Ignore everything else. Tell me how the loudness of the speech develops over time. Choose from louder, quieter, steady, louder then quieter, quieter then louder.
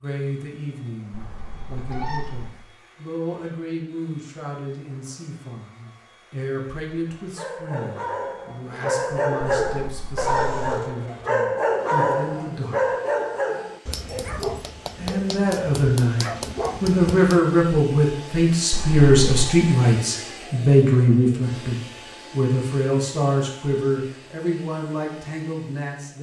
louder then quieter.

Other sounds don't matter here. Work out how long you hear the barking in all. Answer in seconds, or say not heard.
10 s.